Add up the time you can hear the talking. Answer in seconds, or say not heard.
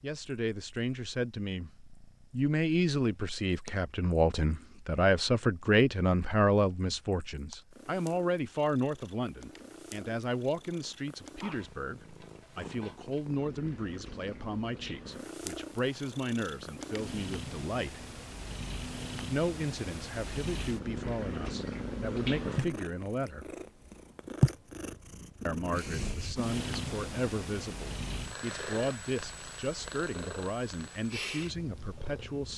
29 s.